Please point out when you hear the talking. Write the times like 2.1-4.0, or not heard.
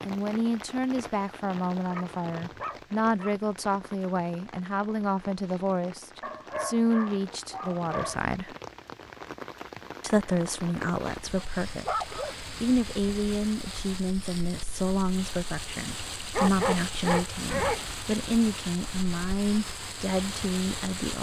0.0-8.6, 10.0-21.1.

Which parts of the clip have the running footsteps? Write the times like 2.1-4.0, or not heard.
not heard.